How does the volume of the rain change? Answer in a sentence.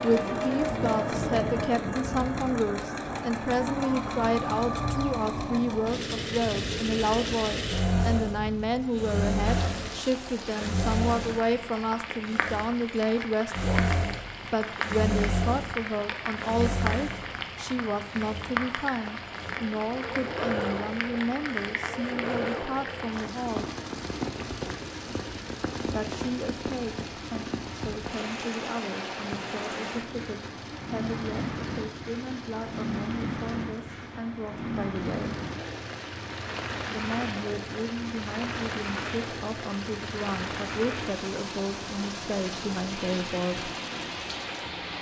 The volume of the rain stays about the same.